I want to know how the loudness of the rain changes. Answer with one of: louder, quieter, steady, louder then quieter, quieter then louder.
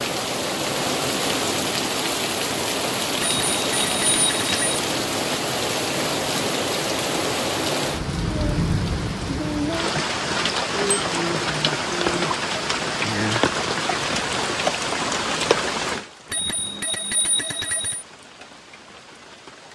quieter.